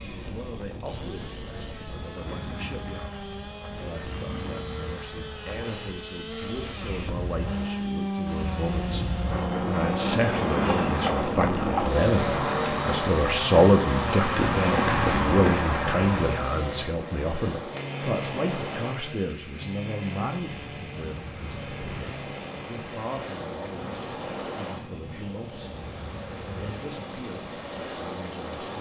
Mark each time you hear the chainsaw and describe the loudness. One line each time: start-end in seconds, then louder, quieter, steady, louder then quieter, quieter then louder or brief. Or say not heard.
0.0-28.7 louder then quieter.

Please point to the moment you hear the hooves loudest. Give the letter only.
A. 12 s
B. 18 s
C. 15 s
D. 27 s
C.